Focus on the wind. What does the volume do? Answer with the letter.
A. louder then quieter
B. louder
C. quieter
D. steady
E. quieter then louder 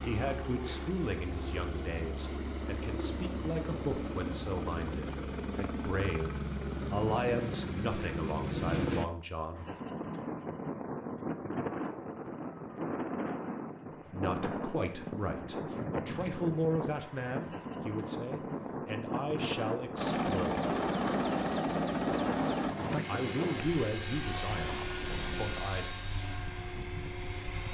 C.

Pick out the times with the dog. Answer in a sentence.
The dog can't be heard in this clip.